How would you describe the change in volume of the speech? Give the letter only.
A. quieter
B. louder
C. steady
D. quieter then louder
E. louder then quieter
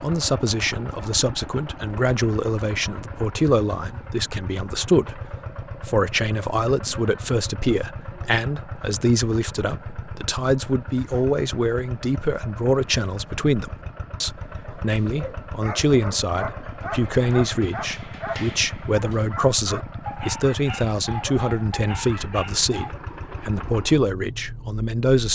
C.